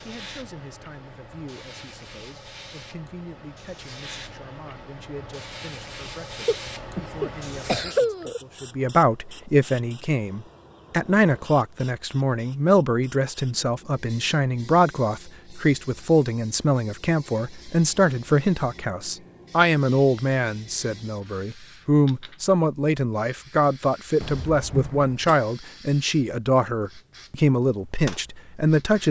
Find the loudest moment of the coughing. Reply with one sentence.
The volume of the coughing peaks at 8 seconds.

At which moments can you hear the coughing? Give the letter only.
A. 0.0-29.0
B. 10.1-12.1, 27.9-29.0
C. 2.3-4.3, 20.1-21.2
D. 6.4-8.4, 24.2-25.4
D.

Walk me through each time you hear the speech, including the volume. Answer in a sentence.
You can hear the speech from 0.0 to 29.0 s, getting louder.